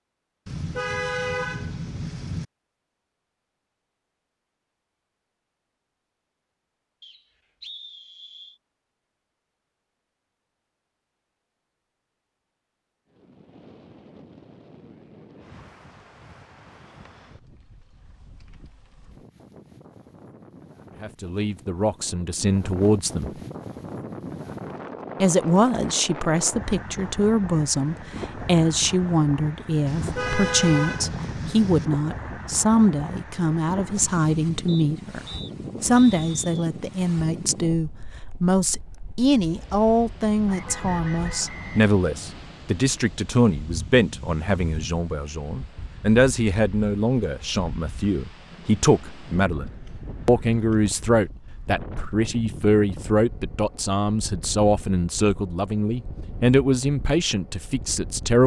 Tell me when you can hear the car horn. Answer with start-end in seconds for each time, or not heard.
0.5-2.5, 29.9-31.9, 40.5-42.4.